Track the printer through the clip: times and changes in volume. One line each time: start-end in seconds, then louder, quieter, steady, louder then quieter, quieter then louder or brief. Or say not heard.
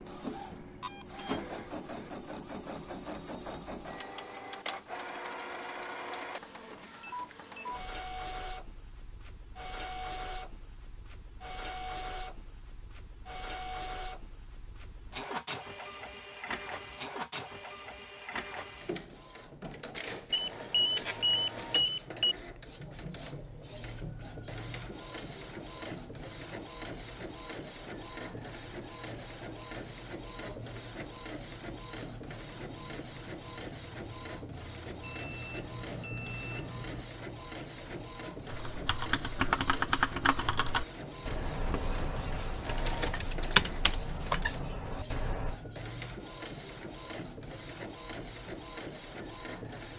0.0-49.9 steady.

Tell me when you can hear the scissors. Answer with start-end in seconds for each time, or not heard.
not heard.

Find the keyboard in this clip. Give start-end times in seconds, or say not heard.
38.5-45.6.